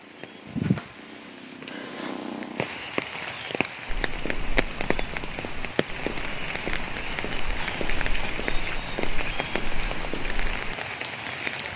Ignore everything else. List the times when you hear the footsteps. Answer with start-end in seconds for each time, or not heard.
3.9-10.8.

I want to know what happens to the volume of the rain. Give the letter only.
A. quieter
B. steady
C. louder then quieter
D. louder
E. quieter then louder
D.